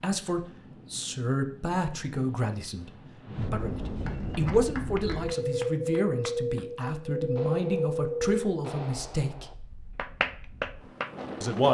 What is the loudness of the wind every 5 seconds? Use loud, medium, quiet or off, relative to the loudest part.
medium, loud, medium.